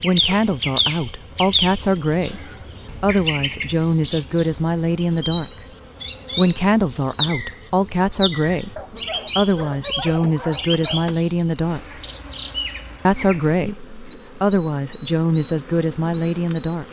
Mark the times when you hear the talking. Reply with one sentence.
The talking can be heard from 0.0 to 5.7 s, from 6.3 to 12.0 s and from 13.1 to 16.8 s.